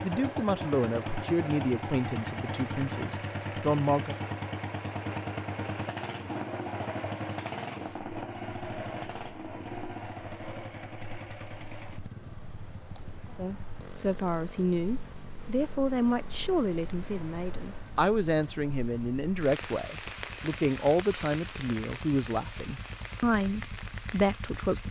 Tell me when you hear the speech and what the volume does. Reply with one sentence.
You can hear the speech from 0.0 to 4.2 s, getting quieter then louder; and from 13.3 to 24.8 s, at a steady volume.